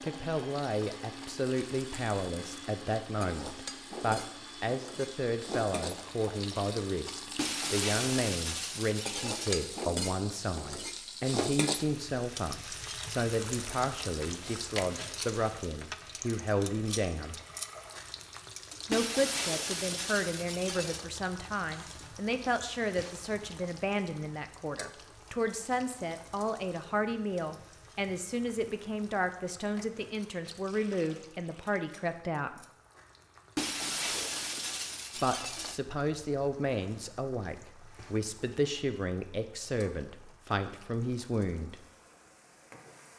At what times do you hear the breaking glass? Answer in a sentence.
You can hear the breaking glass from 7.3 to 9.8 s, from 18.9 to 21.1 s and from 33.5 to 35.8 s.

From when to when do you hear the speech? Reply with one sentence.
You can hear the speech from 0.0 to 17.4 s, from 18.9 to 32.6 s and from 35.1 to 41.9 s.